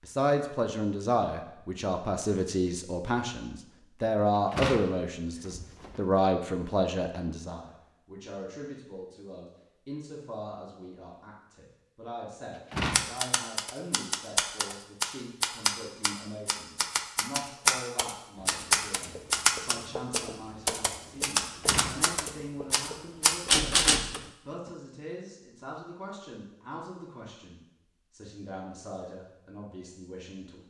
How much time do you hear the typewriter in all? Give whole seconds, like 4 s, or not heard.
11 s.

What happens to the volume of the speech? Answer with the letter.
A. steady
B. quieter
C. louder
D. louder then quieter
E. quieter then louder
B.